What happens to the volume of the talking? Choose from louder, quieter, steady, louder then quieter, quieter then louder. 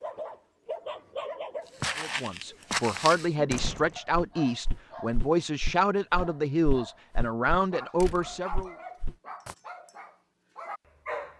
steady.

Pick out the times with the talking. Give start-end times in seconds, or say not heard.
1.9-8.8.